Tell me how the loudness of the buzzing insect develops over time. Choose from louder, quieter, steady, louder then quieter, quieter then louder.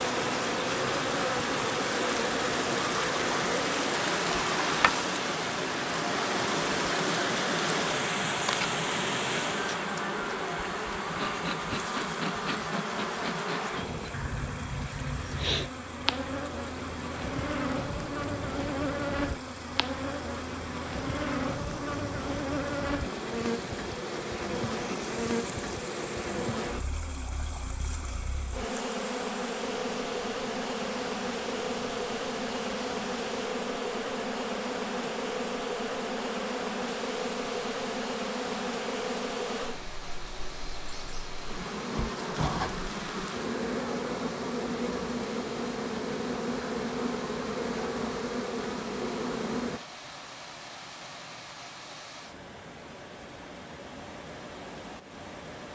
steady.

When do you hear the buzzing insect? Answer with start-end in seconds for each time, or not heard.
0.0-49.8.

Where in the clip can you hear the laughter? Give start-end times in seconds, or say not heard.
not heard.